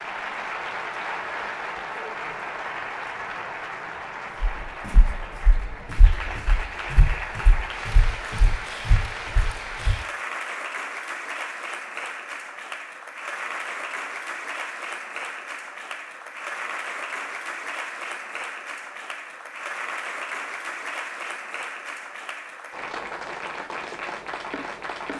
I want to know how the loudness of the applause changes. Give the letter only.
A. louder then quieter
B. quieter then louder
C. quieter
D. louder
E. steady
E.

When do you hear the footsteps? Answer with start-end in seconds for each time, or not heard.
4.6-9.9.